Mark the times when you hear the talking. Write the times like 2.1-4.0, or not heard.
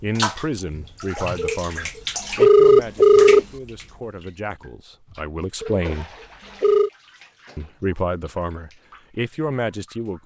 0.0-6.1, 7.5-10.2.